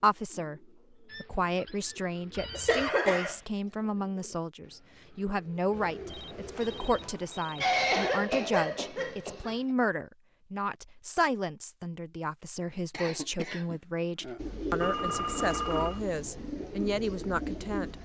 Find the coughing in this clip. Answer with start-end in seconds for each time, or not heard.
2.5-3.4, 7.5-9.6, 12.9-14.4.